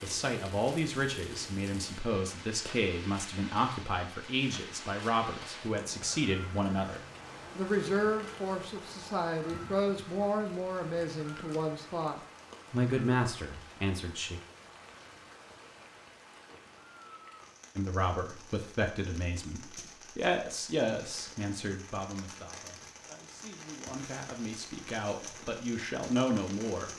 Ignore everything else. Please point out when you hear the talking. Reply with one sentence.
You can hear the talking from 0.0 to 14.4 s and from 17.8 to 26.9 s.